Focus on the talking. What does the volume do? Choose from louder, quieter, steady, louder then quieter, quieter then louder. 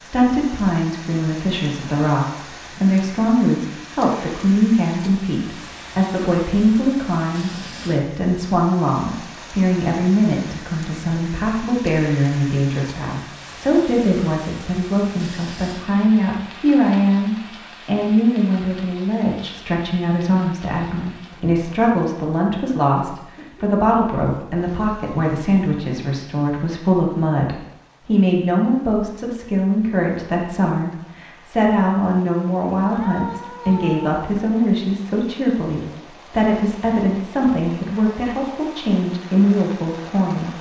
steady.